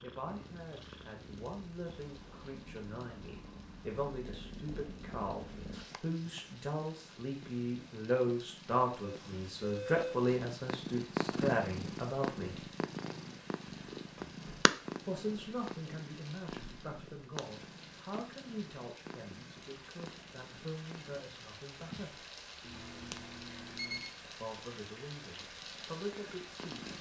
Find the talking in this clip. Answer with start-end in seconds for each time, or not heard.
0.0-12.7, 15.1-22.2, 24.2-26.9.